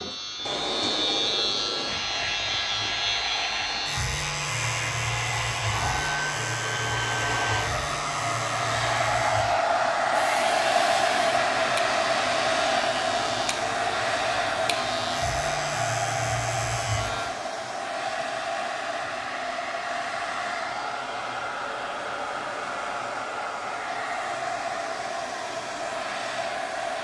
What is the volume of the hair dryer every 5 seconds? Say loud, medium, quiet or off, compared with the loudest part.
medium, loud, loud, medium, medium, medium.